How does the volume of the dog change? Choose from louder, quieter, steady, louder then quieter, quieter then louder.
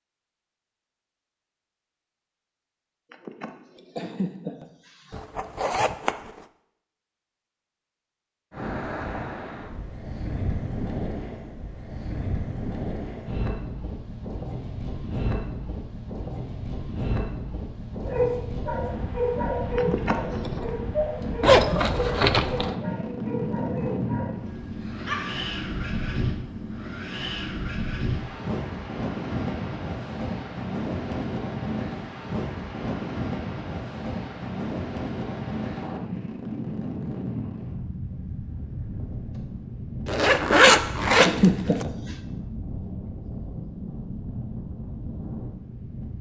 quieter.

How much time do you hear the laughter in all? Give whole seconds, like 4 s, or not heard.
5 s.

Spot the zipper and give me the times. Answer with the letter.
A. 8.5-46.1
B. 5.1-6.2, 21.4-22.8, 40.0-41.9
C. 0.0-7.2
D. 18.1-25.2
B.